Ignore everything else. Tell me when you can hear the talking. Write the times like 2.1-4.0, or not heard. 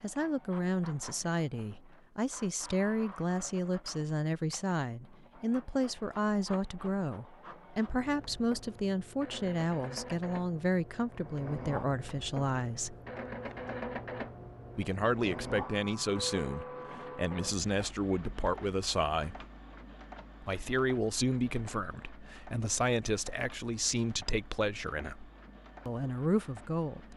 0.0-12.9, 14.8-19.4, 20.4-27.1.